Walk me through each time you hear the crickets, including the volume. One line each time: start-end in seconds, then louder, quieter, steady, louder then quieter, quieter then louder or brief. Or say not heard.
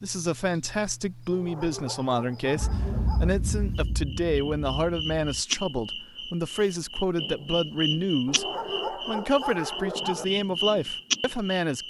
0.0-11.8 louder.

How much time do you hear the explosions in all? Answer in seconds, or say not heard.
3 s.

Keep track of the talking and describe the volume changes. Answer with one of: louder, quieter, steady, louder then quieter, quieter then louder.
steady.